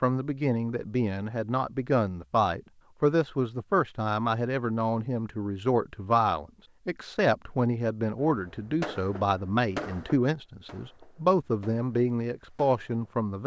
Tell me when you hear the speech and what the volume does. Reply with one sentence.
The speech can be heard from 0.0 to 13.4 s, at a steady volume.